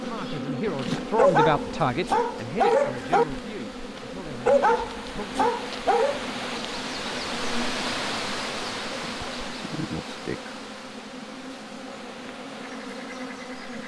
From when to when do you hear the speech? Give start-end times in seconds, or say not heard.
0.0-5.3.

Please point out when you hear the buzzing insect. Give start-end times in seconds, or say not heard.
0.0-13.8.